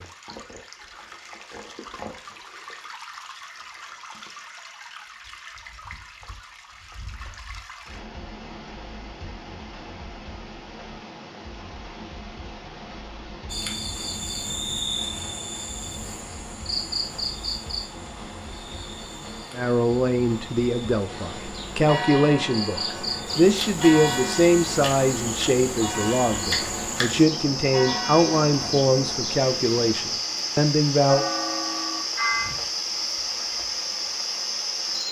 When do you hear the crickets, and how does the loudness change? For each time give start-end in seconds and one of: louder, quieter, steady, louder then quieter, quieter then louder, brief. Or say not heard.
13.5-35.0 quieter then louder.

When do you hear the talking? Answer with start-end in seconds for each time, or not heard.
19.6-31.2.